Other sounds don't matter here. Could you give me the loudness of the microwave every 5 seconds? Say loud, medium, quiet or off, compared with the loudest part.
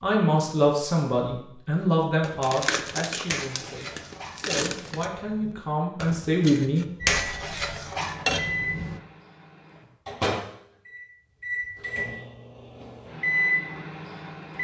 off, medium, loud.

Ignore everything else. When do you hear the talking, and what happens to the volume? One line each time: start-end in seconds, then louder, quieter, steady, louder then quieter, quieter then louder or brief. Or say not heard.
0.0-6.8 quieter then louder.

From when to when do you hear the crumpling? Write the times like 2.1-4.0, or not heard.
2.4-5.1.